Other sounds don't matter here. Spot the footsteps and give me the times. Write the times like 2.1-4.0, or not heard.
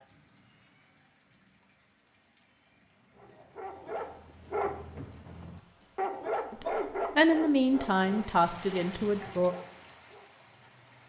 not heard.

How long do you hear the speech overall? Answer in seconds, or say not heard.
3 s.